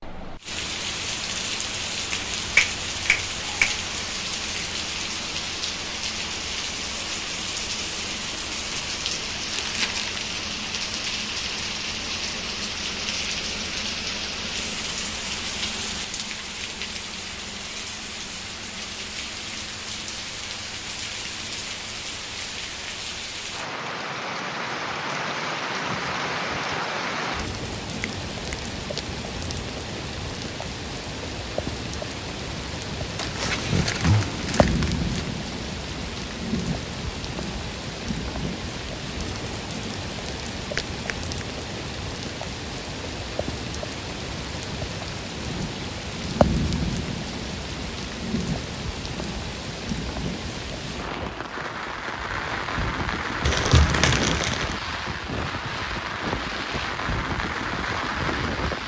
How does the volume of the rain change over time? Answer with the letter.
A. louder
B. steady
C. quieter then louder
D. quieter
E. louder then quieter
B.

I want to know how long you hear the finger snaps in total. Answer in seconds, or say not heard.
3 s.